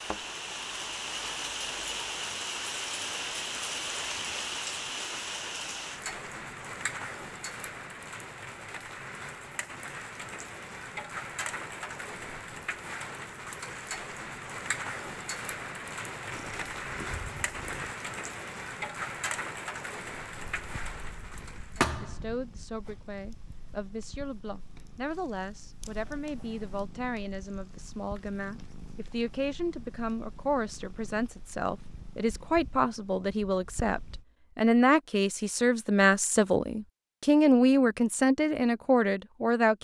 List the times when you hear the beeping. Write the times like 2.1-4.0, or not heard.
not heard.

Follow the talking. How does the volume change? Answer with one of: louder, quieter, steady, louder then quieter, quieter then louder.
louder.